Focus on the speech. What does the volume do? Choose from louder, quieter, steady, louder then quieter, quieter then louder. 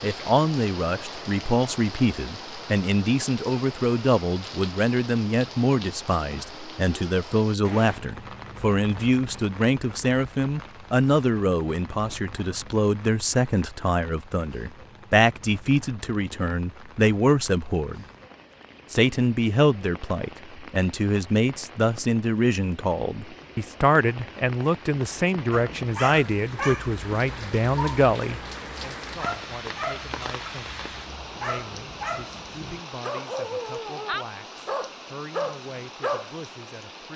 quieter.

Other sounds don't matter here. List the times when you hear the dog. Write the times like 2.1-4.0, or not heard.
25.5-36.3.